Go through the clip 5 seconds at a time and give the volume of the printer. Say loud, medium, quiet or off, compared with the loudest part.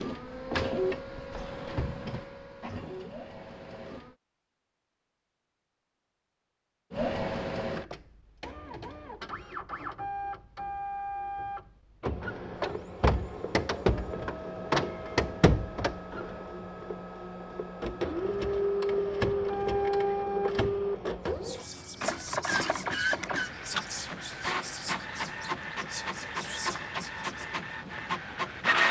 medium, medium, loud, loud, loud, loud.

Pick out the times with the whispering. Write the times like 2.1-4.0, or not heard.
21.2-27.4.